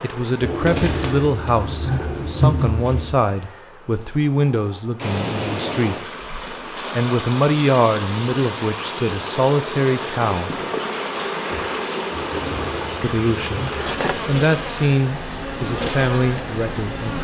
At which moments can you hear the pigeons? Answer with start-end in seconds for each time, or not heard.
0.4-3.1, 12.1-14.0.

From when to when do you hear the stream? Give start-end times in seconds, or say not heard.
5.0-17.1.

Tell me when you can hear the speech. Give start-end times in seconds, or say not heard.
0.0-6.0, 7.0-10.6, 13.0-13.7, 14.2-17.1.